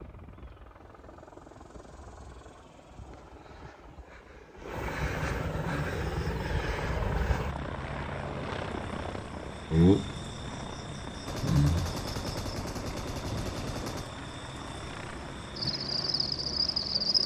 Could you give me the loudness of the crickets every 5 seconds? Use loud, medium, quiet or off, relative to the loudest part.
off, loud, medium, loud.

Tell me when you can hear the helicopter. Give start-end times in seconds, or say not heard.
0.0-17.2.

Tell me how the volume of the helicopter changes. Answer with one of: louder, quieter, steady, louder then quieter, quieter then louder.
louder then quieter.